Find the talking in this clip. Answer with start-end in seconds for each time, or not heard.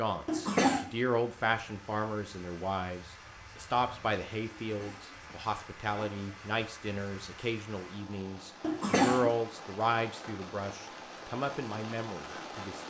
0.0-12.8.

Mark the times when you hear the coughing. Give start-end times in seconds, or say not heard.
0.2-0.9, 4.6-6.4, 8.6-9.3.